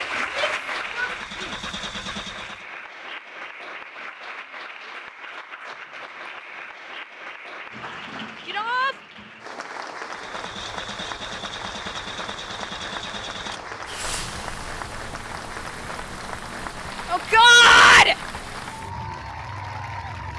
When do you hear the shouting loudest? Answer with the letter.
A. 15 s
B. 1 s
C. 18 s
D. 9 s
C.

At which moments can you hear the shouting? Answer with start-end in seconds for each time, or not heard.
0.2-1.6, 8.4-8.9, 17.1-18.1.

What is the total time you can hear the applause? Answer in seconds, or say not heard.
20 s.